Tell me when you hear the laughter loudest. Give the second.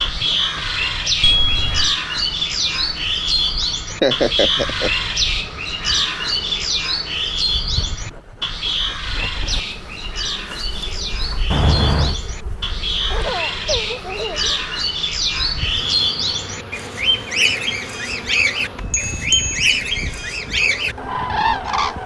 4 s.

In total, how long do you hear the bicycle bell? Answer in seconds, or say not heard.
3 s.